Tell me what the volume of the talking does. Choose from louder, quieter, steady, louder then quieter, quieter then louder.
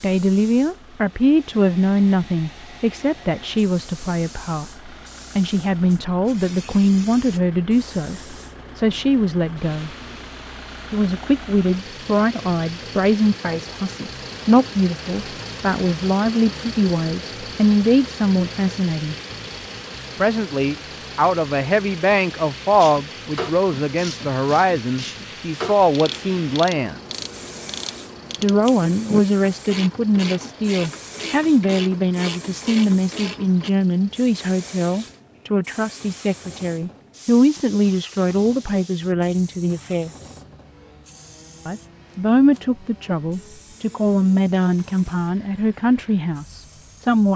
steady.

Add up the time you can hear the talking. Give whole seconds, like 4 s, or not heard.
42 s.